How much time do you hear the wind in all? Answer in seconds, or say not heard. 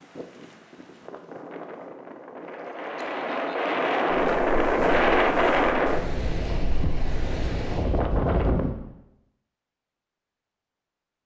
9 s.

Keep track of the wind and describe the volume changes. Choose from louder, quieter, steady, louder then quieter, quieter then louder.
louder then quieter.